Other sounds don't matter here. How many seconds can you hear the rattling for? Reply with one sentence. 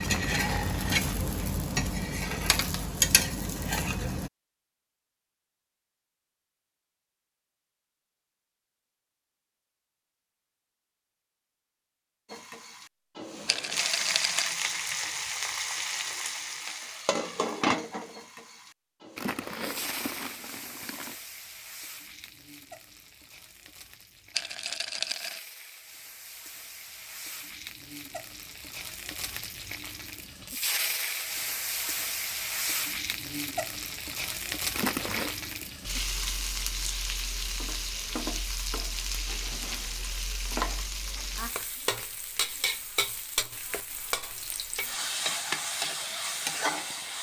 You can hear the rattling for 2 seconds altogether.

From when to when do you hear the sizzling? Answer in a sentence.
The sizzling can be heard from 0.0 to 4.3 s and from 12.3 to 47.1 s.